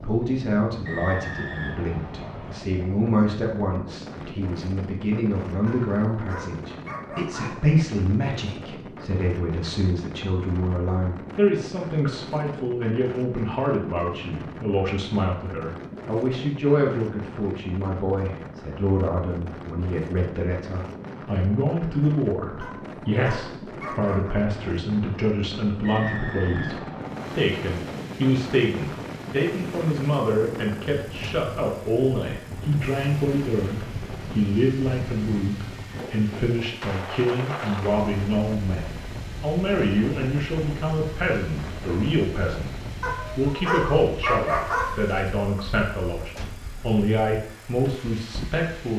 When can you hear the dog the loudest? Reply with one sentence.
The loudest moment of the dog is at 44 seconds.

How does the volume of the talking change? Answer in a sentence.
The volume of the talking stays about the same.